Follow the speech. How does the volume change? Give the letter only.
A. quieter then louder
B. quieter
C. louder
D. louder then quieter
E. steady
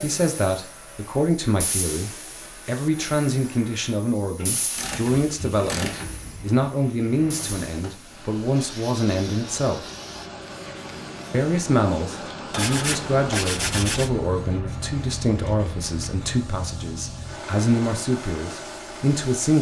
E.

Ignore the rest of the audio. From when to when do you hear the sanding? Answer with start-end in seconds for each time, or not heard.
12.5-14.1.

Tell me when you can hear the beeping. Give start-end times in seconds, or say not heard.
not heard.